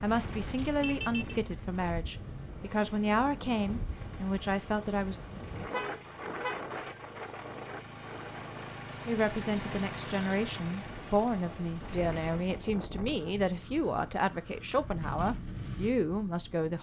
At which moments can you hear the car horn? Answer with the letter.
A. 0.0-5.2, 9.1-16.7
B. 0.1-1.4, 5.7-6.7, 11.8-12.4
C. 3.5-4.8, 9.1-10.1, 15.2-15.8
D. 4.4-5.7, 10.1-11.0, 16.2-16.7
B.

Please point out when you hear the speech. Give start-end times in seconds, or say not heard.
0.0-5.2, 9.1-16.7.